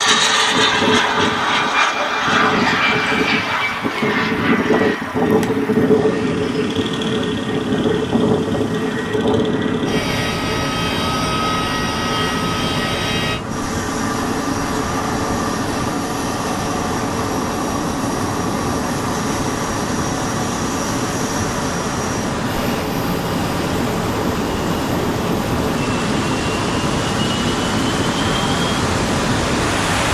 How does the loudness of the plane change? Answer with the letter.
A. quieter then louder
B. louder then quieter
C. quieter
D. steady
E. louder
C.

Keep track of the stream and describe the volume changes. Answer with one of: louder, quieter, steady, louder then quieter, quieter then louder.
louder.